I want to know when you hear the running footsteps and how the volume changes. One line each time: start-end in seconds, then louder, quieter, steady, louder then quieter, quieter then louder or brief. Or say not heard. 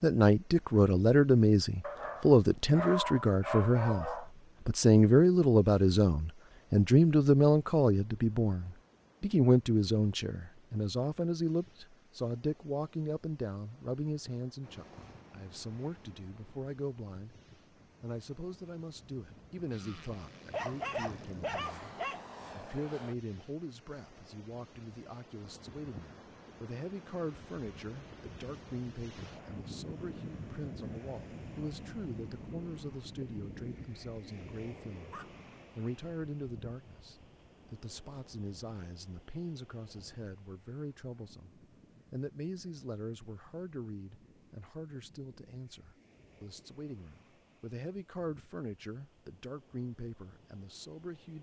not heard.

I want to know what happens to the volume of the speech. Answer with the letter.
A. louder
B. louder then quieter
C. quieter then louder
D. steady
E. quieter
E.